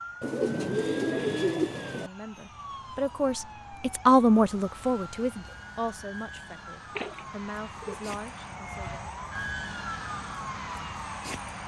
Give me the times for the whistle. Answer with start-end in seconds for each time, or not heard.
not heard.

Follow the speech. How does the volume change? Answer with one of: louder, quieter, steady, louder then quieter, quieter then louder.
louder then quieter.